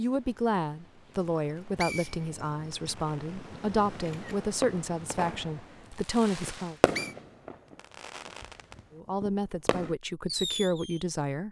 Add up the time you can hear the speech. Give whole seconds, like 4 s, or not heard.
9 s.